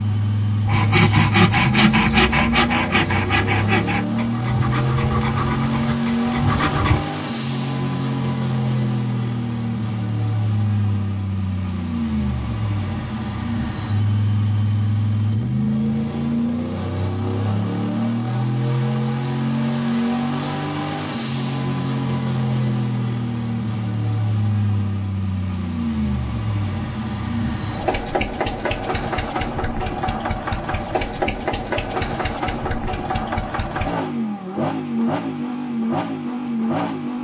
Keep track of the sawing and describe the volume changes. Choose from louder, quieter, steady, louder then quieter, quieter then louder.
quieter.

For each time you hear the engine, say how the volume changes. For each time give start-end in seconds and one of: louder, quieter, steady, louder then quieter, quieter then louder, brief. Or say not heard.
0.0-37.1 steady.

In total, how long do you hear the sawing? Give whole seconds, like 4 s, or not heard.
6 s.